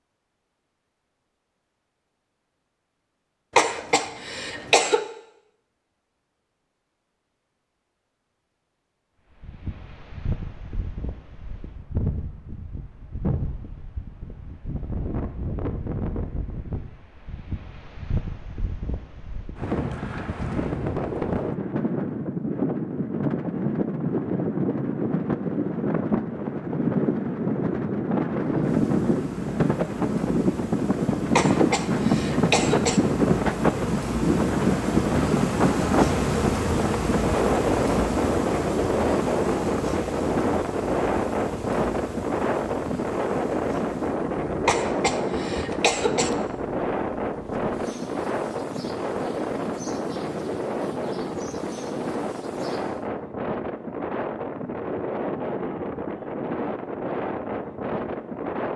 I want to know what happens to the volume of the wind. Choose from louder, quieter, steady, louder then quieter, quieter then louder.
louder then quieter.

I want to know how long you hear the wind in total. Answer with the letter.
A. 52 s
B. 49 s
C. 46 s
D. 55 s
B.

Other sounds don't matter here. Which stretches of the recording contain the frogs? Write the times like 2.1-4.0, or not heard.
not heard.